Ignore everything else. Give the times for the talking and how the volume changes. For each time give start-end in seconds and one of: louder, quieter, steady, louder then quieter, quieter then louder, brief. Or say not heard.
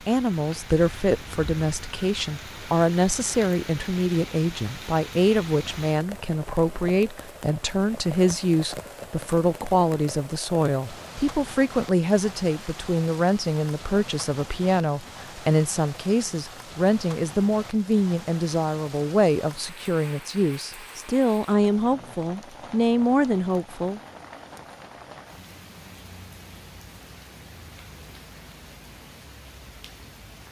0.1-24.0 steady.